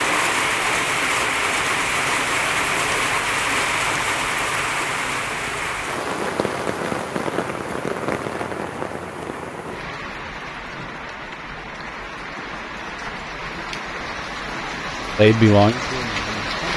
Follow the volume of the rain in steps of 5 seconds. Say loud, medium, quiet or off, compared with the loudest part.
loud, medium, medium, medium.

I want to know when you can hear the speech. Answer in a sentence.
The speech can be heard from 15.2 to 16.6 s.